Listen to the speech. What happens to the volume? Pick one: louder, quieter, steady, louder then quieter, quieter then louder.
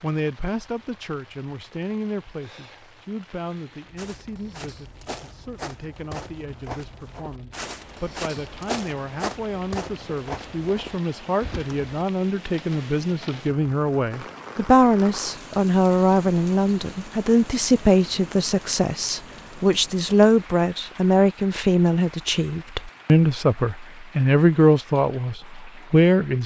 louder.